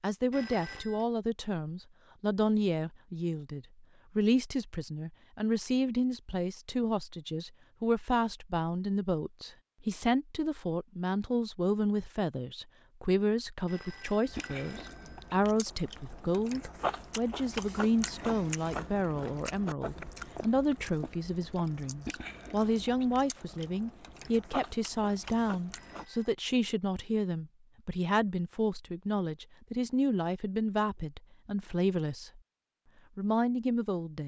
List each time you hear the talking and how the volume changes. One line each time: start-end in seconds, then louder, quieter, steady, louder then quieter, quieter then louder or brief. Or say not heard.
0.0-32.4 steady
33.1-34.2 brief.